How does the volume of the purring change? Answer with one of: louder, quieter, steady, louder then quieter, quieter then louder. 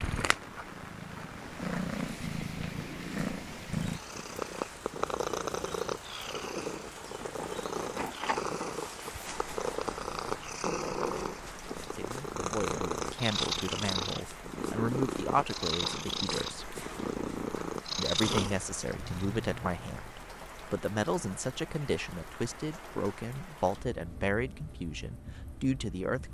steady.